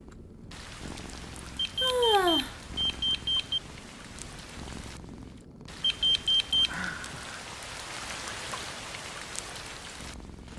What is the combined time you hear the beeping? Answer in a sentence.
You can hear the beeping for 3 seconds altogether.